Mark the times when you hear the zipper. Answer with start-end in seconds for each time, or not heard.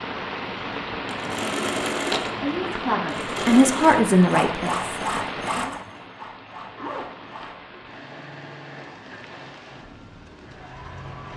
6.8-7.5.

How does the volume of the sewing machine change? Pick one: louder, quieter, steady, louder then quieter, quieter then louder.
quieter.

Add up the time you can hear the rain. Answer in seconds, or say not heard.
11 s.